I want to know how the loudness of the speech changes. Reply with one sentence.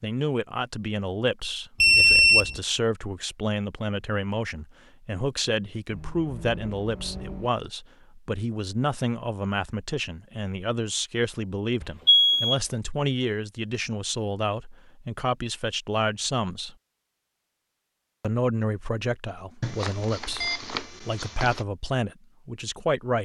The volume of the speech stays about the same.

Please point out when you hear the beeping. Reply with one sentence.
The beeping can be heard from 1.8 to 2.6 s, from 11.8 to 12.6 s and from 19.6 to 21.6 s.